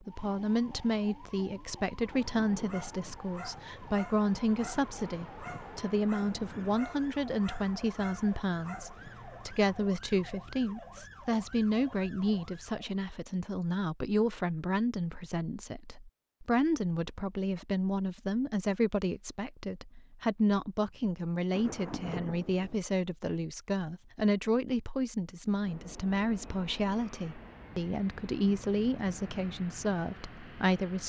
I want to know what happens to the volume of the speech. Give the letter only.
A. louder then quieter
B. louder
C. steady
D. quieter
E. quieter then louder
C.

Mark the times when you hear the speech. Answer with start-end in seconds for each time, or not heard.
0.1-31.0.